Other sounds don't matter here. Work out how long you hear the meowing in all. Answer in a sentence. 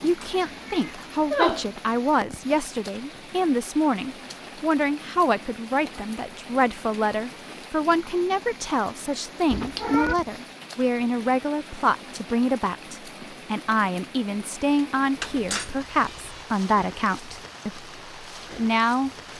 You can hear the meowing for 3 seconds altogether.